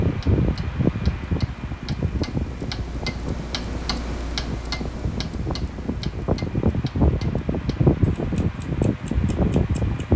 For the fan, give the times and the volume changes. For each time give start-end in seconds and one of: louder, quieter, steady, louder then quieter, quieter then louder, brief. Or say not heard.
0.0-10.1 quieter then louder.